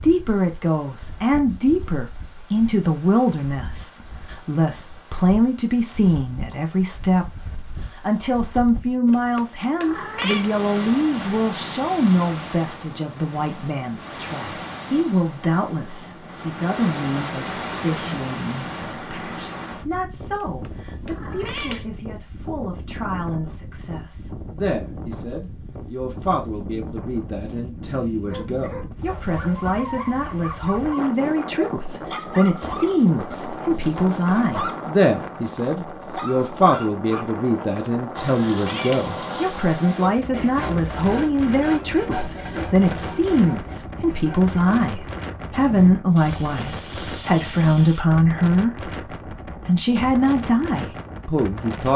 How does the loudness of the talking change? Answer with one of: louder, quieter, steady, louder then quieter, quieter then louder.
quieter then louder.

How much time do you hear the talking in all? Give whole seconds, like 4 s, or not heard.
52 s.